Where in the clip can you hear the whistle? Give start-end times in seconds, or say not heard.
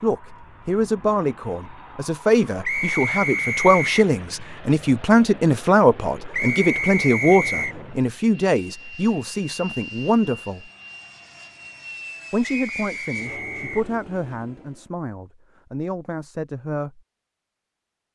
2.6-4.1, 6.3-7.8, 12.4-13.9.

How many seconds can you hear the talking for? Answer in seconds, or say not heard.
15 s.